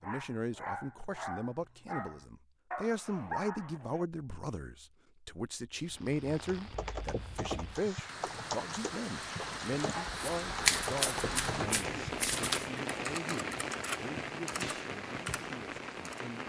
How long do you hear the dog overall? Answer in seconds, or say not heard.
4 s.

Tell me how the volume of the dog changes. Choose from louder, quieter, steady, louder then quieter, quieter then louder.
steady.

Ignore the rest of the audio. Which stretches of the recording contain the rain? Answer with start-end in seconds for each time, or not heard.
5.7-16.4.